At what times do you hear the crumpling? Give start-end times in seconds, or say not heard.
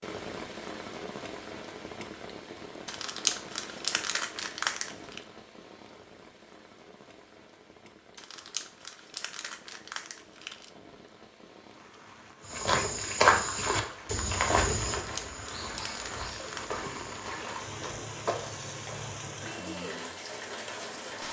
2.9-5.2, 8.2-10.7, 15.0-16.8.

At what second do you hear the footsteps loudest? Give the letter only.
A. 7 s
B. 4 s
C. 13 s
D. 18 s
C.